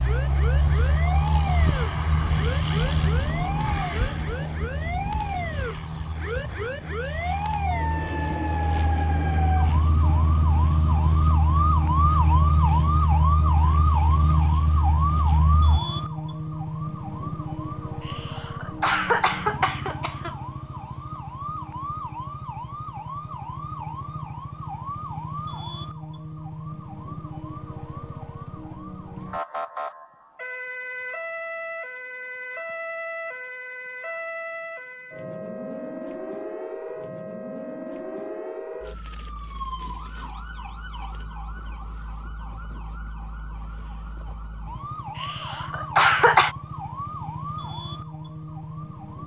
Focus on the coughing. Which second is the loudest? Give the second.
46 s.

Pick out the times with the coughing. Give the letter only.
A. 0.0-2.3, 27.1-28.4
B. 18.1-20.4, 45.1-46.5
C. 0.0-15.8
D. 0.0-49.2
B.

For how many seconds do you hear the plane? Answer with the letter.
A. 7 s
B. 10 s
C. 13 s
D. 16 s
D.